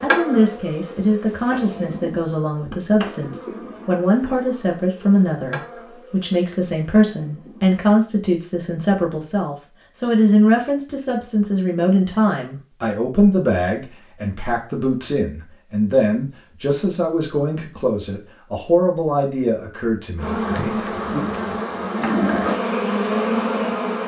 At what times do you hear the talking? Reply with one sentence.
The talking can be heard from 0.0 to 21.2 s.